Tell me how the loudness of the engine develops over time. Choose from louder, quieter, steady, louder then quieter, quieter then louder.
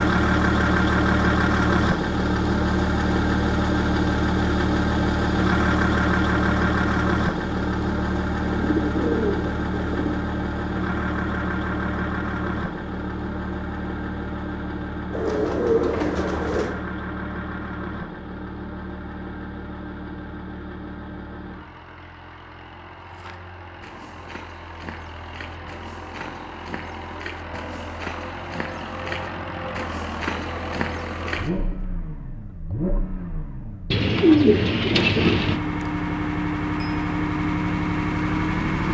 quieter then louder.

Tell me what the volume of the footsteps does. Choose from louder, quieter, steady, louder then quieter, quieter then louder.
louder.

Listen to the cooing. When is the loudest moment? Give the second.
34 s.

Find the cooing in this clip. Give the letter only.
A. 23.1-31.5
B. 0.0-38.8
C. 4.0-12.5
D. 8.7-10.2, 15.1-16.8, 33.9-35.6
D.